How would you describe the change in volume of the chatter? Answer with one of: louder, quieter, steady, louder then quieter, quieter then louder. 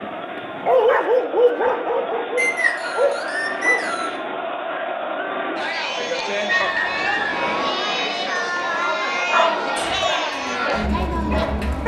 louder.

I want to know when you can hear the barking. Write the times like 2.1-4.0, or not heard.
0.0-3.8, 9.1-11.8.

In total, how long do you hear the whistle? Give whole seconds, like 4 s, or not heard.
3 s.